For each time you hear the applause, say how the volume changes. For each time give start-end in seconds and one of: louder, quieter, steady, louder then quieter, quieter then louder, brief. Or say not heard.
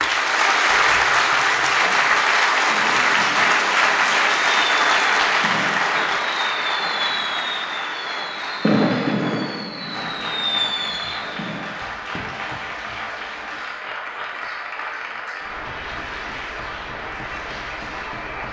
0.0-18.4 quieter.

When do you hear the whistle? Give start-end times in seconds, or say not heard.
not heard.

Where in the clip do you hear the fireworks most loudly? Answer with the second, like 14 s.
9 s.